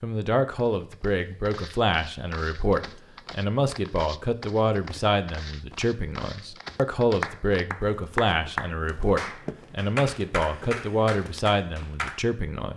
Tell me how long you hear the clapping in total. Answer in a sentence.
You can hear the clapping for 5 seconds altogether.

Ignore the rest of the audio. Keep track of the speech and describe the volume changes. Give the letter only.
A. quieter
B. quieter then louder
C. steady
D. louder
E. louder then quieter
C.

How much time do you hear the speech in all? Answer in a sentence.
You can hear the speech for 13 seconds altogether.